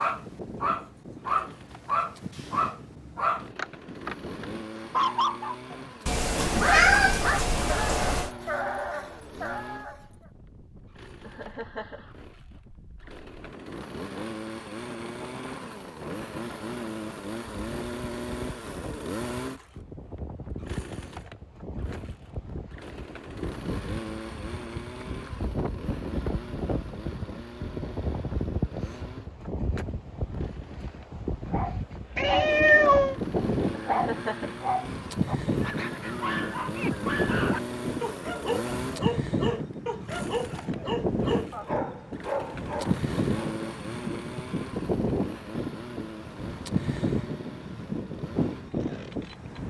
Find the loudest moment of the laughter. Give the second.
34 s.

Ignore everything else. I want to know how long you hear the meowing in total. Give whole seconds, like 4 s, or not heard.
3 s.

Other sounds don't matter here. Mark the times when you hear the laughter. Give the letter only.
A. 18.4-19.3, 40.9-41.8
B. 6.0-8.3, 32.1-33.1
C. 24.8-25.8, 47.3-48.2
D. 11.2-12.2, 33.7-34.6
D.